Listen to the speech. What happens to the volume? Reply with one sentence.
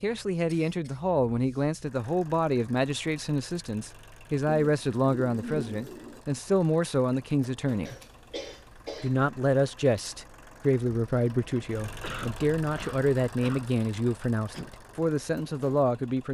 The volume of the speech stays about the same.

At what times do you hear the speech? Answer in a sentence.
You can hear the speech from 0.0 to 8.0 s and from 9.0 to 16.2 s.